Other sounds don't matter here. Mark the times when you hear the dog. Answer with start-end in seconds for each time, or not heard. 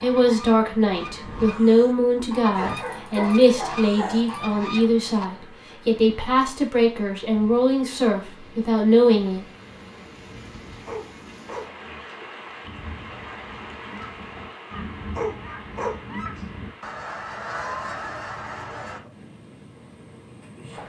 2.5-4.4, 10.8-12.2, 15.1-16.4.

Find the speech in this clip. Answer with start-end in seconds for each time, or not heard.
0.0-9.4.